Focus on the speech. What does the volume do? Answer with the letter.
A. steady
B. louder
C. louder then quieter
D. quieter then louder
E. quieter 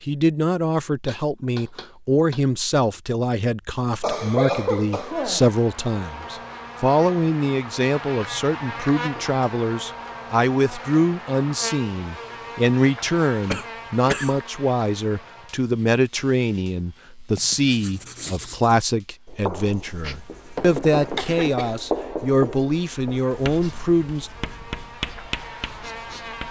A.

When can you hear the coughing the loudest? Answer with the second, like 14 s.
5 s.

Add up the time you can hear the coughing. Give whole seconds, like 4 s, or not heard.
3 s.